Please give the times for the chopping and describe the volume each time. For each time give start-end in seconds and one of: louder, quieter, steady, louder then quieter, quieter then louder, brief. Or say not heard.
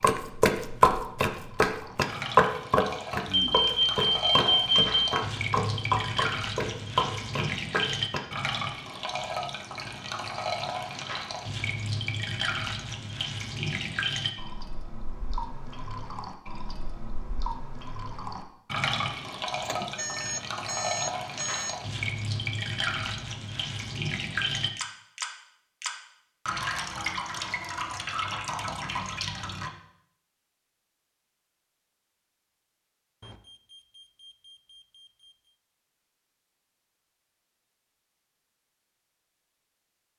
0.0-8.2 quieter.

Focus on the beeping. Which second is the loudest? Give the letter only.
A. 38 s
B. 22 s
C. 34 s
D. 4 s
D.